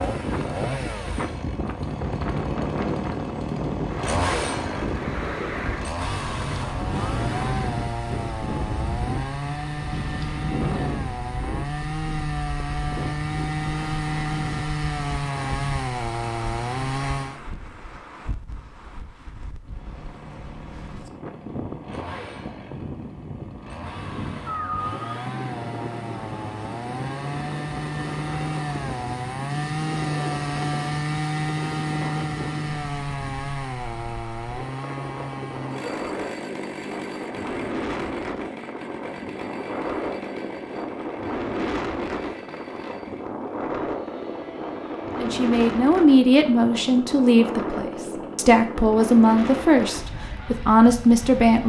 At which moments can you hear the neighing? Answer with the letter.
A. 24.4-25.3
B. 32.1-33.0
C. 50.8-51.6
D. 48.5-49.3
A.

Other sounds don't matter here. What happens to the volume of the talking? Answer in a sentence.
The loudness of the talking stays about the same.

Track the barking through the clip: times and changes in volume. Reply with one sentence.
You can't hear the barking here.